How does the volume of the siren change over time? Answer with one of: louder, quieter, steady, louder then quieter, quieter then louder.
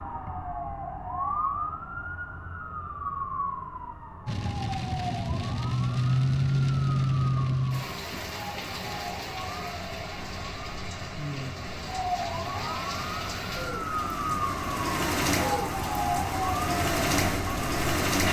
quieter then louder.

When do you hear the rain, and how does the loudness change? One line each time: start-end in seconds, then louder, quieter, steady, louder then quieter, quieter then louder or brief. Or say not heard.
4.2-18.2 quieter then louder.